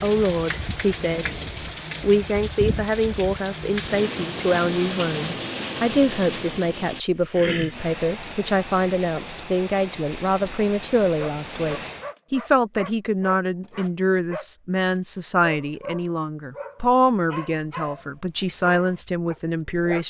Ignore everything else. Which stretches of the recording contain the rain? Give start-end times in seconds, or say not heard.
0.0-12.1.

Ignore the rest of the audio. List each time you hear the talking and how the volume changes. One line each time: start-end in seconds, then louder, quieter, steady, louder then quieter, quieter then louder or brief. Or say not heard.
0.0-1.3 brief
2.0-20.0 steady.